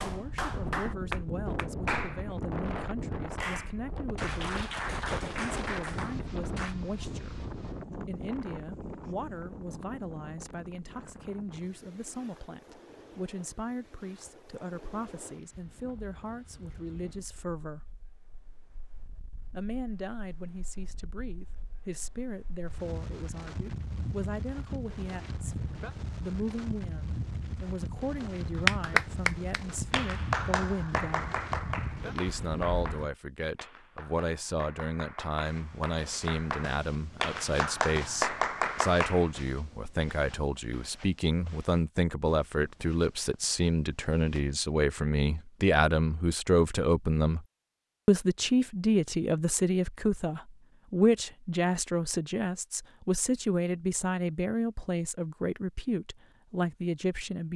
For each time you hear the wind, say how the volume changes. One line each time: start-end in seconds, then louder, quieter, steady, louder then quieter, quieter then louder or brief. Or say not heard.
0.0-33.1 quieter then louder.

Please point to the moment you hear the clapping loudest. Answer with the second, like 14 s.
29 s.